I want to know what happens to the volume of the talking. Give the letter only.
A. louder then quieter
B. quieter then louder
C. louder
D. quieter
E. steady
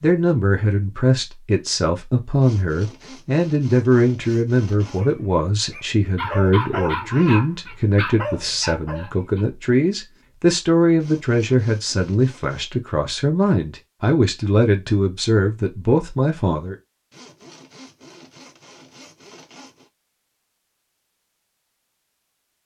E.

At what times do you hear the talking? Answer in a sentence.
The talking can be heard from 0.0 to 16.8 s.